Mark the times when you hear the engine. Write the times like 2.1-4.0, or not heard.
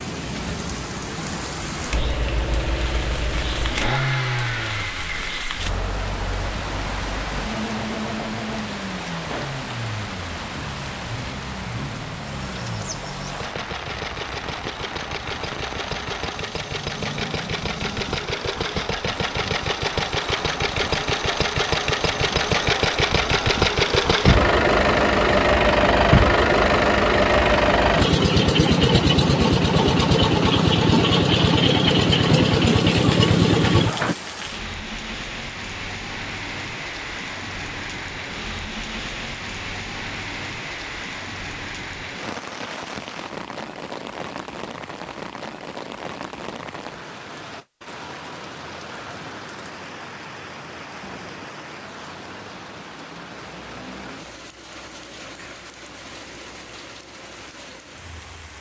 1.9-34.1.